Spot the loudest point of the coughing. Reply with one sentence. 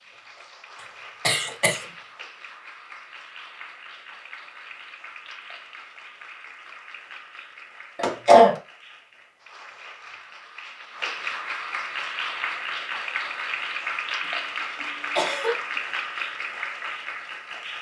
The volume of the coughing peaks at 8 seconds.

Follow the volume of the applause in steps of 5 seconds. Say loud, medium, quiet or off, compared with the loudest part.
quiet, quiet, loud, loud.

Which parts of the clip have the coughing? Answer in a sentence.
The coughing can be heard from 1.2 to 1.8 s, from 8.0 to 8.6 s and from 14.2 to 15.8 s.